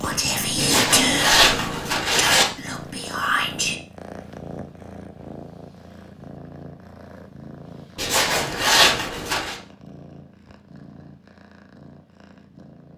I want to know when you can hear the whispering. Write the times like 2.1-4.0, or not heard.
0.0-3.8.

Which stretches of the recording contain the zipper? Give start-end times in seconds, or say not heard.
0.6-2.5, 8.0-9.6.